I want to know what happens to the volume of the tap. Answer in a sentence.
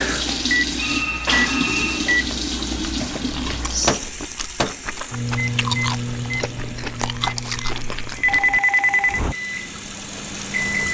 The volume of the tap goes down, then up.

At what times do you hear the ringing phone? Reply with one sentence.
You can hear the ringing phone from 0.8 to 2.1 s and from 8.2 to 9.2 s.